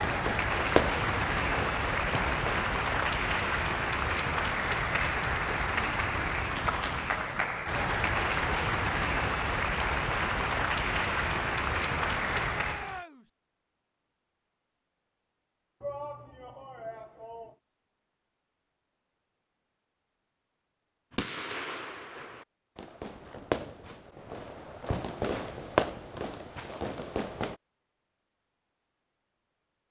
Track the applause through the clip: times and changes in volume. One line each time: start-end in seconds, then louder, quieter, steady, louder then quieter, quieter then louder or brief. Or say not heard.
0.0-13.0 steady.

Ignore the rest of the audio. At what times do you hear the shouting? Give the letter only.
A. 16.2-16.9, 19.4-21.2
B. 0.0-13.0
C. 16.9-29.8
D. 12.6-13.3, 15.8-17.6
D.